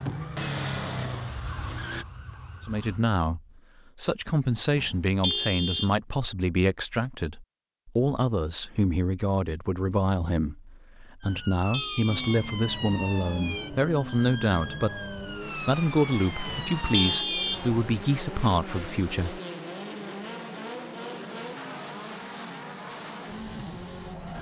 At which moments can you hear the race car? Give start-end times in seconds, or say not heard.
0.0-2.0, 12.1-24.3.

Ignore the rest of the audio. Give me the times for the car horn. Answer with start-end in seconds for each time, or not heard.
4.8-6.0, 11.2-12.4, 16.4-17.7.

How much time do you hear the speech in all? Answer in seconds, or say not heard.
17 s.